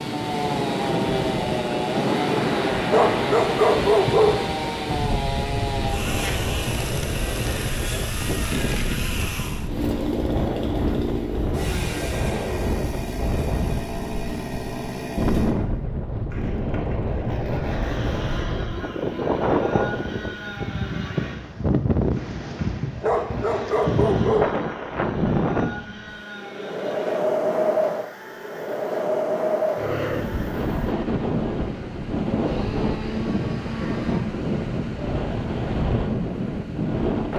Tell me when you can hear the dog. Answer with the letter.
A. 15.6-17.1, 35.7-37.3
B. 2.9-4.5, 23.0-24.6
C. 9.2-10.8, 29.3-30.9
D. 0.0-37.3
B.